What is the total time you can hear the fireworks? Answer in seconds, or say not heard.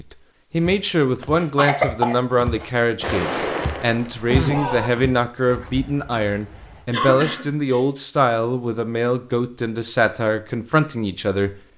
2 s.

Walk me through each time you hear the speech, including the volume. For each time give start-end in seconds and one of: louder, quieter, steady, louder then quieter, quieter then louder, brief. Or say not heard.
0.0-11.5 steady.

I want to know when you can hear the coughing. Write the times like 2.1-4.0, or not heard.
1.4-2.7, 6.9-7.8.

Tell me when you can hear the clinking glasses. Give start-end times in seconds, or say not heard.
not heard.